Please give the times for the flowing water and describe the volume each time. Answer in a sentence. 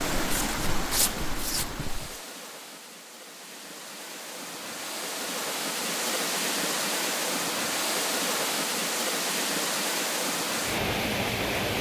The flowing water can be heard from 0.0 to 11.7 s, getting quieter then louder.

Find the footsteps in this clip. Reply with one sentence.
You can hear the footsteps from 0.1 to 2.2 s.